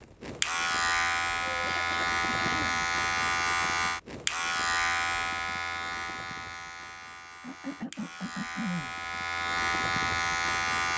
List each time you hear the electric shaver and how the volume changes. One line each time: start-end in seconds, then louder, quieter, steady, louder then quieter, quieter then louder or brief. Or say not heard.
0.0-10.9 quieter then louder.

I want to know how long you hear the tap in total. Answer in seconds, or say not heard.
not heard.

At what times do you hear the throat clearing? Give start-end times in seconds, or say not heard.
1.4-2.9, 7.4-8.9.